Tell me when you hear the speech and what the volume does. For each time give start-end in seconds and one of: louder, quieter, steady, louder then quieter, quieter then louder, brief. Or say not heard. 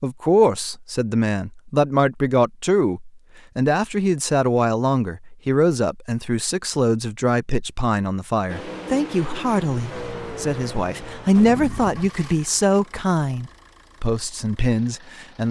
0.0-15.4 steady.